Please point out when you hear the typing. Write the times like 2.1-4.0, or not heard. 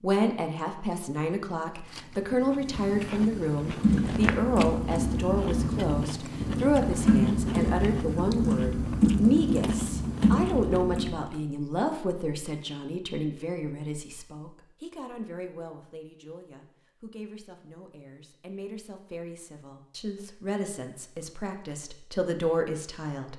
3.6-11.2.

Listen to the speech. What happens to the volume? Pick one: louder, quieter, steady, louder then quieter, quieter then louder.
quieter then louder.